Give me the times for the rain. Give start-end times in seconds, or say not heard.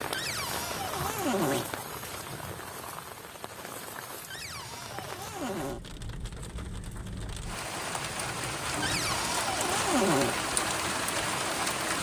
0.0-11.9.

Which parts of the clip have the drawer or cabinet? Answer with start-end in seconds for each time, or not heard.
0.1-1.6, 4.3-5.8, 8.8-10.3.